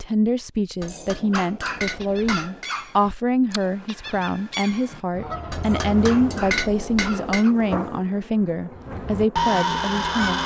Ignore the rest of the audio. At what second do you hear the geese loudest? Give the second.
10 s.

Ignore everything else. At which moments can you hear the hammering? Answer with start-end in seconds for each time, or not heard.
0.8-2.8, 5.5-7.5.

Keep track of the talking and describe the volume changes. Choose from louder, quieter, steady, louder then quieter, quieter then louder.
steady.